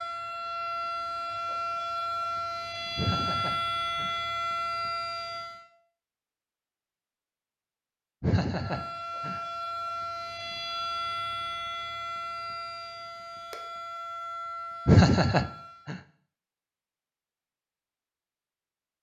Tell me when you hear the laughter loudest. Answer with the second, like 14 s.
15 s.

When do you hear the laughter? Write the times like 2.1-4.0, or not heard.
3.0-4.2, 8.2-9.4, 14.8-15.9.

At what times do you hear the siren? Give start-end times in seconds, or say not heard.
0.0-5.7, 8.6-15.9.